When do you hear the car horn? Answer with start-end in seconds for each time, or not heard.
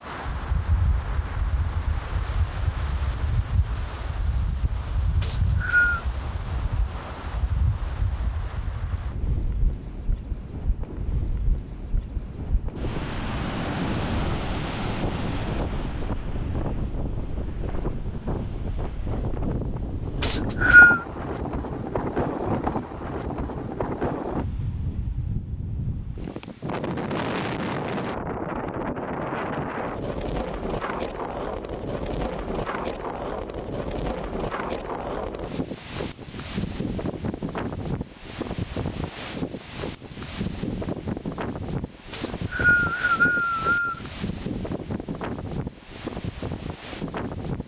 not heard.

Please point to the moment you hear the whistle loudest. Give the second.
21 s.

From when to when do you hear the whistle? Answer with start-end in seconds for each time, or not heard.
5.2-6.0, 20.2-21.0, 42.1-44.0.